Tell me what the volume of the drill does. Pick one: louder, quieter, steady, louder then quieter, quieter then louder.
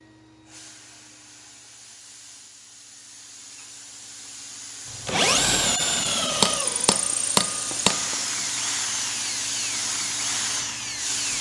quieter.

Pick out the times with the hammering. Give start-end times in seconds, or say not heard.
6.4-8.2.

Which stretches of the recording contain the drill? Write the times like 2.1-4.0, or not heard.
4.9-11.3.